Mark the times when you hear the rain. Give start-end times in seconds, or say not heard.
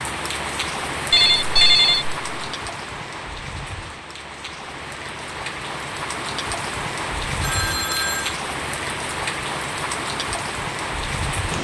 0.0-11.5.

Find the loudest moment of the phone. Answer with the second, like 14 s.
2 s.